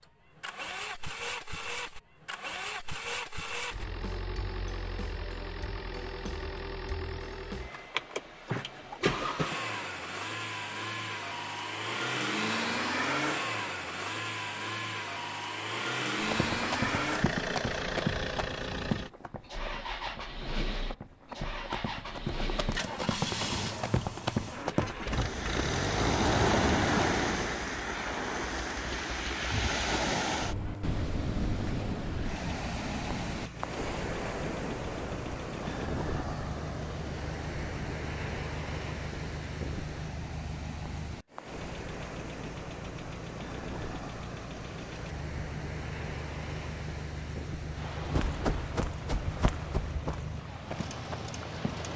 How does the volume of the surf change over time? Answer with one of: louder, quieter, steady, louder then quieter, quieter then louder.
quieter.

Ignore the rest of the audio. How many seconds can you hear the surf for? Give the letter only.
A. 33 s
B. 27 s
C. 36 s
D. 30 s
B.